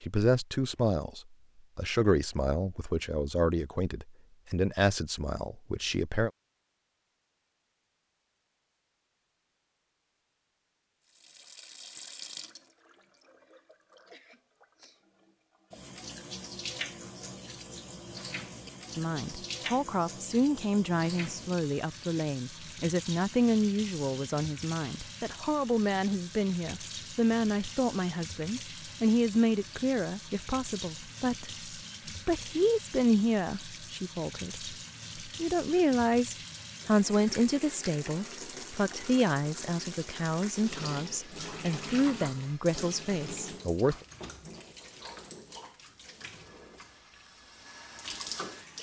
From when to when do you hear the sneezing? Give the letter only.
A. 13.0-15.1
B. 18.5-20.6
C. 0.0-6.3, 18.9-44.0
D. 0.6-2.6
A.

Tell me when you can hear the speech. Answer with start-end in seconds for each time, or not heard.
0.0-6.3, 18.9-44.0.